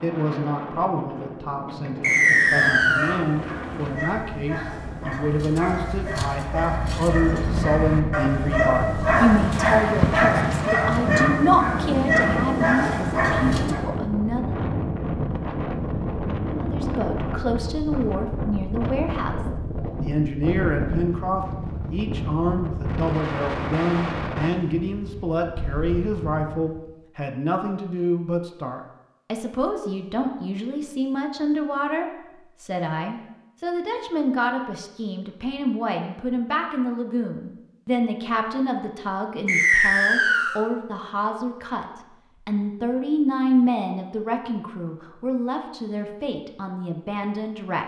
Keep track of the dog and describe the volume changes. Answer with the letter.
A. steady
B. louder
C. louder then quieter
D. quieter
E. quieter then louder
B.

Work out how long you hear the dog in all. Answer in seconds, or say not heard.
11 s.